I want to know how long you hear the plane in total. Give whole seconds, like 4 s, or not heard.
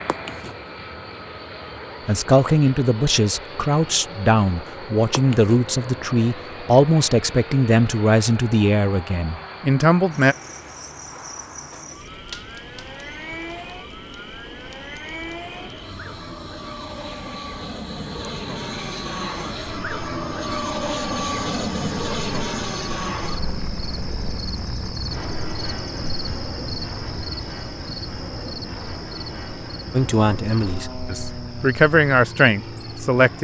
33 s.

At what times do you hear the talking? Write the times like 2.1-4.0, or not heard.
2.0-10.3, 29.9-33.3.